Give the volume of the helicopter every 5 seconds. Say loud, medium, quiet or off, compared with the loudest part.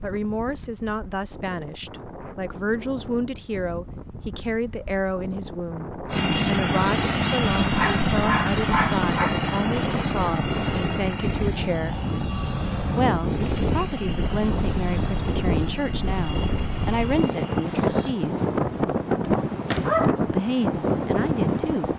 off, loud, medium, medium, off.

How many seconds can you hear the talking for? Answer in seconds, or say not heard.
19 s.